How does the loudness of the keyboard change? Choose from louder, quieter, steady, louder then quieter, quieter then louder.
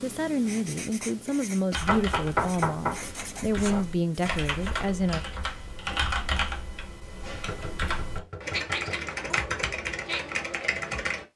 louder.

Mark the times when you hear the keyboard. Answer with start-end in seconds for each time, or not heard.
1.7-11.2.